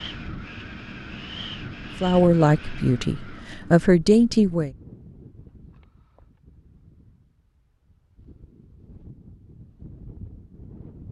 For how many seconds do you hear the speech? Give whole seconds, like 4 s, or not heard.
3 s.